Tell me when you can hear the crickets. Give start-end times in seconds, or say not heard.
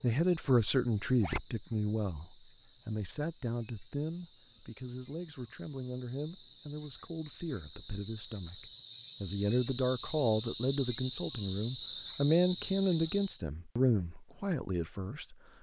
0.0-13.4.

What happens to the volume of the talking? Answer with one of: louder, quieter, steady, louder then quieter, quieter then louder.
quieter then louder.